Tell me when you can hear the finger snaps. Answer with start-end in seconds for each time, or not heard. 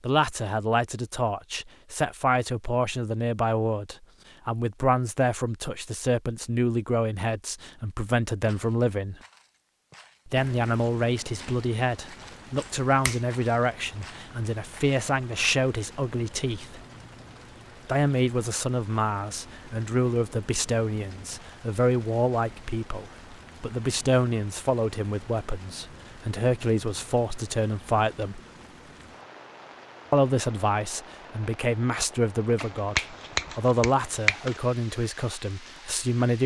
12.6-13.2, 32.5-34.6.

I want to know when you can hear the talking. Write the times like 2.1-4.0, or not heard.
0.0-9.2, 10.2-16.8, 17.9-28.4, 30.1-36.4.